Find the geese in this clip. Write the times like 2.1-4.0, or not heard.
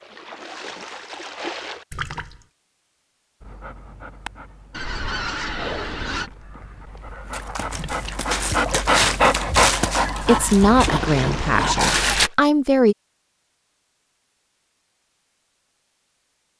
4.7-6.3, 9.9-11.7.